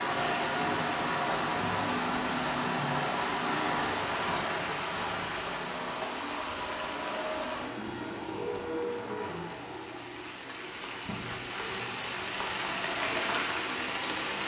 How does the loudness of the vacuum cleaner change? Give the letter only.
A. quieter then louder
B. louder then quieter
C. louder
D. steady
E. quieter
E.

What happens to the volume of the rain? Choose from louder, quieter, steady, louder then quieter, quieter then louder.
quieter then louder.